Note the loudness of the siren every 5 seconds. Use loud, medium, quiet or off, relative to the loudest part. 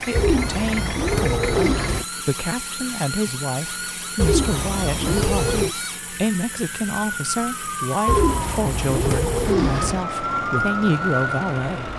medium, loud, loud.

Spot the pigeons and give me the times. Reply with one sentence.
The pigeons can be heard from 0.1 to 2.0 s, from 4.2 to 5.8 s and from 8.1 to 10.1 s.